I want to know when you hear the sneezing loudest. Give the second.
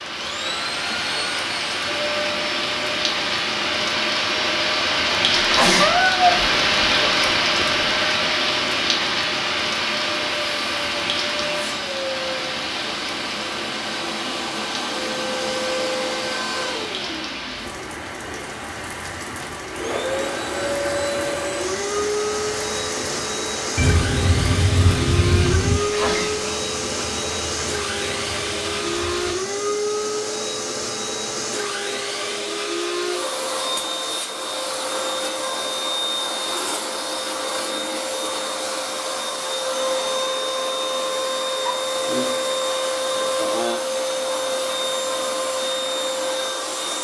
6 s.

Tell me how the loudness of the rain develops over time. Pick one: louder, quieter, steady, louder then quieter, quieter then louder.
quieter.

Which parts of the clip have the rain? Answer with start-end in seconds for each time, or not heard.
0.0-29.4.